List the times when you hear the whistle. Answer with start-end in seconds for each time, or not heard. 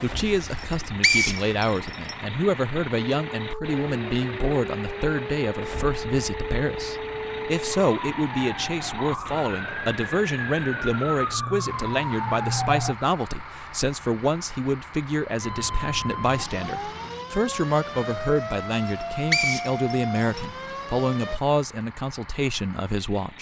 0.5-2.1, 18.8-20.4.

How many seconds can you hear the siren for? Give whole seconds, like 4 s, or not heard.
16 s.